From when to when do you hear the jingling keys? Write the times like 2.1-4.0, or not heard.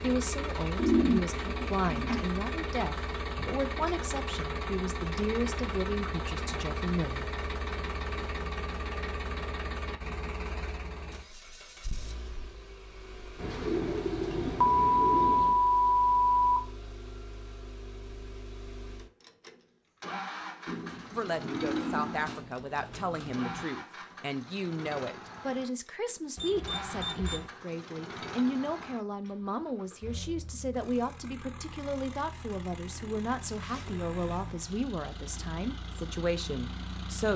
not heard.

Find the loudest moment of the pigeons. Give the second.
1 s.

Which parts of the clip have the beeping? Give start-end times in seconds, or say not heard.
14.6-16.6, 26.4-27.4.